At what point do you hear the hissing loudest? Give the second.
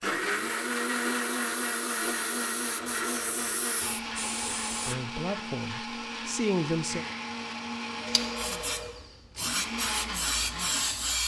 11 s.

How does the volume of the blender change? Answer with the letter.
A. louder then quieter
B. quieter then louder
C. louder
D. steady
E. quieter
E.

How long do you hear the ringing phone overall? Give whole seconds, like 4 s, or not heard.
3 s.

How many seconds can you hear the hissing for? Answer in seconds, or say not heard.
8 s.